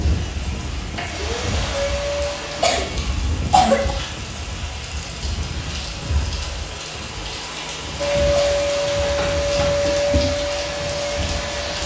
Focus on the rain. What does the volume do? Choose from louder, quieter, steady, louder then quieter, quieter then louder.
steady.